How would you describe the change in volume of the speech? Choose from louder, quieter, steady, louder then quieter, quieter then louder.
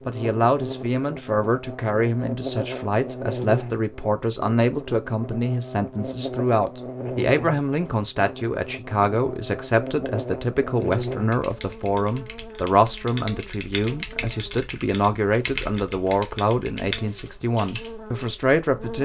steady.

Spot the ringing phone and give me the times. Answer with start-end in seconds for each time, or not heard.
not heard.